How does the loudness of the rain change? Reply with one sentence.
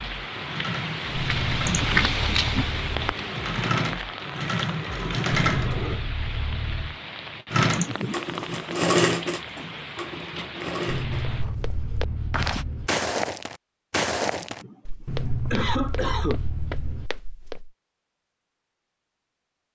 The volume of the rain goes down.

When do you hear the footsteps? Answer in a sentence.
The footsteps can be heard from 11.4 to 17.7 s.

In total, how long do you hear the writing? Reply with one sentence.
The writing can be heard for 8 seconds in total.